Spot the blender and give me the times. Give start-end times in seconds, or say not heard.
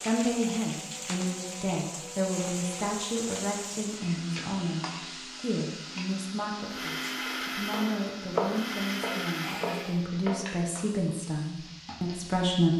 0.0-10.1.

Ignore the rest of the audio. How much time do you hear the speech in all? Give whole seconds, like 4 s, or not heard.
13 s.